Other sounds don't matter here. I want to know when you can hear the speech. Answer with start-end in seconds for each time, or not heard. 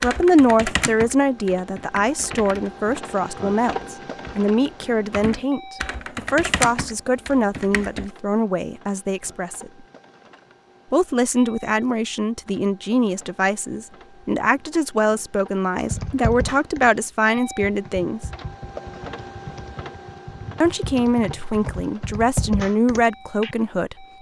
0.0-9.7, 10.9-18.2, 20.6-24.1.